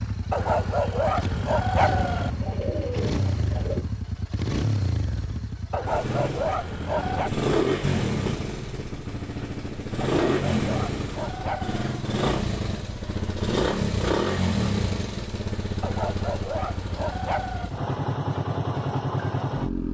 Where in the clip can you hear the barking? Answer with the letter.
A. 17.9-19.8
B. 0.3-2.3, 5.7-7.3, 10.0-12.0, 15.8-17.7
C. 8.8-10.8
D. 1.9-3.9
B.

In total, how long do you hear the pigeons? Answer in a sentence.
You can hear the pigeons for 2 seconds altogether.